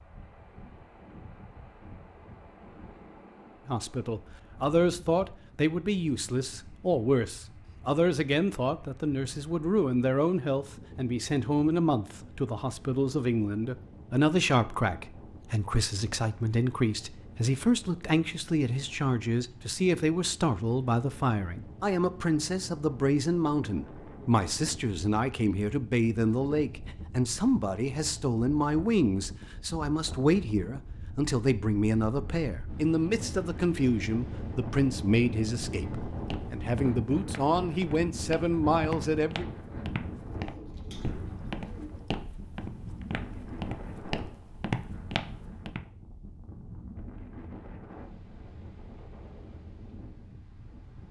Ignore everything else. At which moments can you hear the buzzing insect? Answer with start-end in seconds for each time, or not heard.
not heard.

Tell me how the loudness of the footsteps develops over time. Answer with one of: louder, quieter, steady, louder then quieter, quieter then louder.
louder.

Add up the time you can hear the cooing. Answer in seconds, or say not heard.
2 s.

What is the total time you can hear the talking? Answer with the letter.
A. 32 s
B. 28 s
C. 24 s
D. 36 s
D.